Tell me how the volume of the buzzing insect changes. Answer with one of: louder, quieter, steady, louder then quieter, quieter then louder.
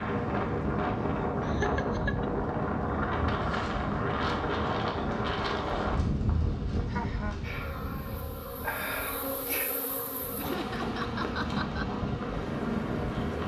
louder.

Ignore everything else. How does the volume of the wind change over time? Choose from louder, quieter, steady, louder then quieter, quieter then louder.
quieter then louder.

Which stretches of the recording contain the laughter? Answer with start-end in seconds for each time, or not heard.
1.4-2.3, 6.8-7.4, 10.3-11.8.